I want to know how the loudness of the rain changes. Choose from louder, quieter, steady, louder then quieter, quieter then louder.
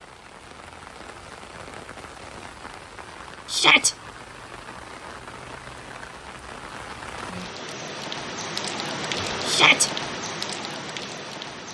louder.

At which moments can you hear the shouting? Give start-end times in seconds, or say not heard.
3.5-4.0, 9.4-9.9.